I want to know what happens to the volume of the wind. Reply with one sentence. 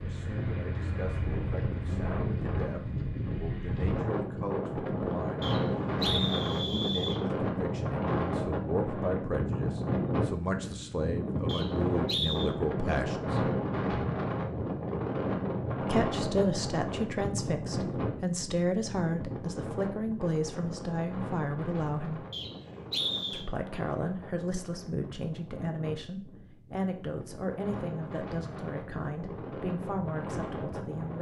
The loudness of the wind goes down.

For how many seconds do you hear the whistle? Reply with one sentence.
You can hear the whistle for 4 seconds altogether.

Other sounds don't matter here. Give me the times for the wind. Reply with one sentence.
You can hear the wind from 0.0 to 31.1 s.